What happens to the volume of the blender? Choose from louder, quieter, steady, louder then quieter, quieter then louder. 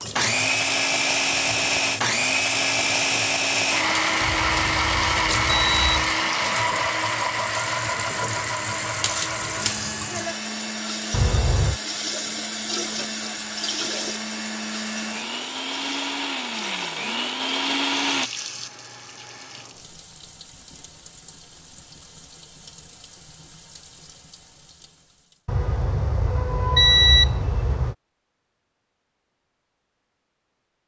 quieter then louder.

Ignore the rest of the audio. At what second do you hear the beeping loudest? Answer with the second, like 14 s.
27 s.